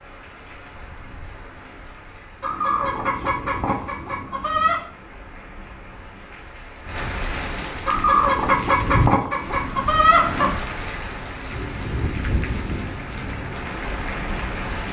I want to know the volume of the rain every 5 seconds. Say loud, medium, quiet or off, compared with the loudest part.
quiet, loud, loud.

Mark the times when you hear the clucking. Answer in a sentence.
The clucking can be heard from 2.4 to 4.8 s and from 7.8 to 10.6 s.